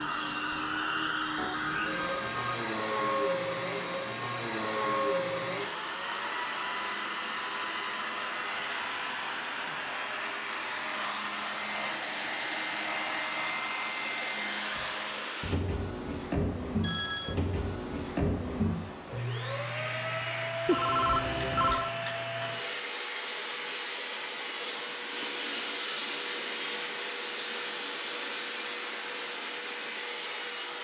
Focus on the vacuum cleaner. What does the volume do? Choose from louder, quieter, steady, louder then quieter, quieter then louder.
steady.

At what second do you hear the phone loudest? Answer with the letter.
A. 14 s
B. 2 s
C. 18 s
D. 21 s
D.